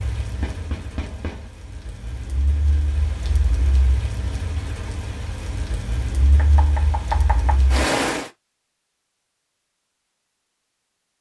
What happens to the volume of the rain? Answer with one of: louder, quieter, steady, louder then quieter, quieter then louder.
louder.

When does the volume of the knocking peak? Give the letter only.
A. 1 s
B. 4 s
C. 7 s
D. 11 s
C.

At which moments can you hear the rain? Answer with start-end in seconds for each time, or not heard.
0.0-8.3.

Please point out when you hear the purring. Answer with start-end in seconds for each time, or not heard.
not heard.